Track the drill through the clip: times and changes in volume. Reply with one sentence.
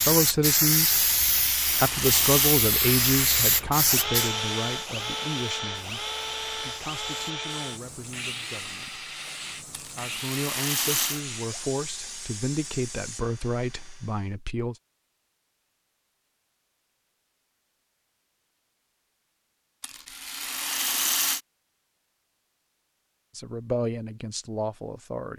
The drill can be heard from 2.8 to 14.3 s, getting quieter.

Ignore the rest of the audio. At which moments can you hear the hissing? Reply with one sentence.
The hissing can be heard from 0.0 to 13.2 s.